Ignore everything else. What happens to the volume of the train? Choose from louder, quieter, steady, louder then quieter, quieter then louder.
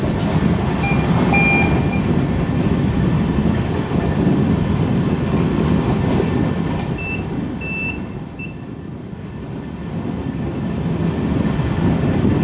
quieter then louder.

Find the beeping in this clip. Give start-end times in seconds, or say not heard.
0.8-2.0, 7.0-8.5.